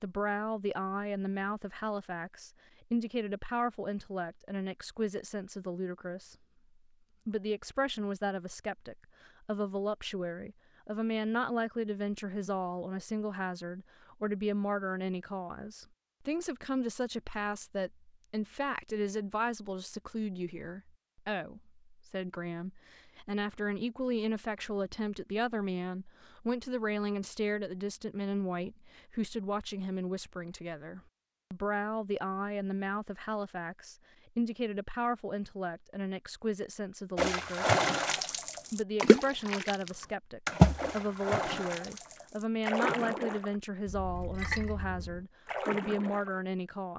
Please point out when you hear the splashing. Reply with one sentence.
The splashing can be heard from 37.1 to 46.4 s.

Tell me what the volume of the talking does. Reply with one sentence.
The loudness of the talking stays about the same.